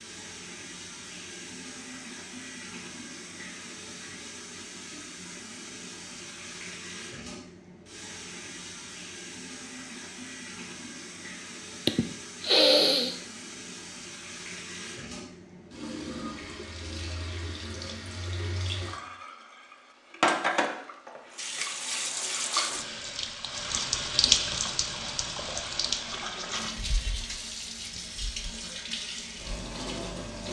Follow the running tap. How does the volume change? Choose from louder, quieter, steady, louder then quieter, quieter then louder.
louder.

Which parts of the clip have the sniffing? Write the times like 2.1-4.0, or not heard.
11.8-13.2.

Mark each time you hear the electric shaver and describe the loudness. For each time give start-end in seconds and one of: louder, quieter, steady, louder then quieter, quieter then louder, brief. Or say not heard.
not heard.